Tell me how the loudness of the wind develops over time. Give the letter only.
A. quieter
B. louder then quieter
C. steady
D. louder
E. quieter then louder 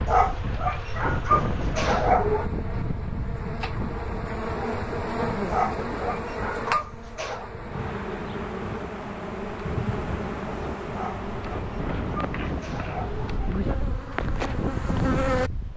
E.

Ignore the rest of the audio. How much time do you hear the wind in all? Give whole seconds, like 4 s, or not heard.
16 s.